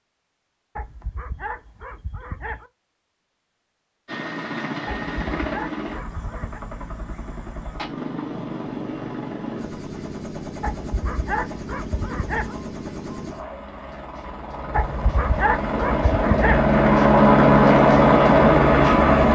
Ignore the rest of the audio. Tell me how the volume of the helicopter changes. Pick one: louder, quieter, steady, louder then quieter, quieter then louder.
louder.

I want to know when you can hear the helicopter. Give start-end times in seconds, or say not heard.
4.0-19.2.